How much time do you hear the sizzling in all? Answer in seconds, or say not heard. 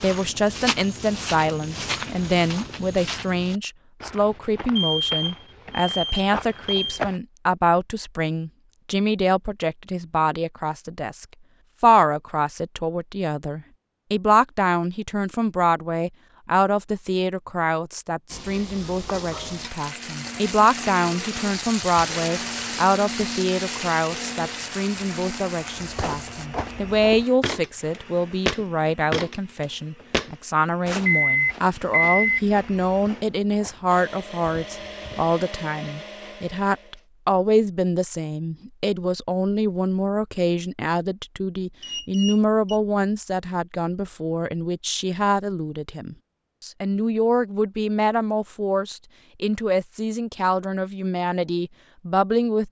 8 s.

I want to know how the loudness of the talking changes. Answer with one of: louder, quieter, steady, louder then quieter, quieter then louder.
steady.